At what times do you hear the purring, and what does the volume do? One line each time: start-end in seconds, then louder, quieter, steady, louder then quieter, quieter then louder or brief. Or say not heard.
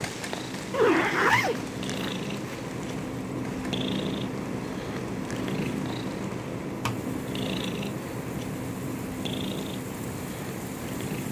0.0-11.2 steady.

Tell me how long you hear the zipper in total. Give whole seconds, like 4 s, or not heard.
2 s.